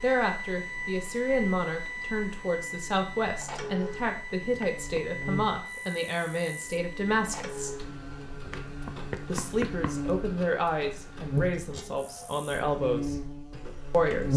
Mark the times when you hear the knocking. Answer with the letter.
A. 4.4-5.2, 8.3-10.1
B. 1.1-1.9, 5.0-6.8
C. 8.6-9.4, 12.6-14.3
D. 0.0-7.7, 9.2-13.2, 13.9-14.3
A.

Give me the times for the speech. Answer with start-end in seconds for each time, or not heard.
0.0-7.7, 9.2-13.2, 13.9-14.3.